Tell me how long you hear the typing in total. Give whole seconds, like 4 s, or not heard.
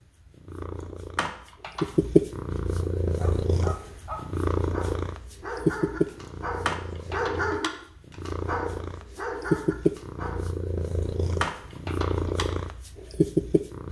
3 s.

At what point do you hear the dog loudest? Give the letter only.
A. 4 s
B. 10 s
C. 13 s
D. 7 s
D.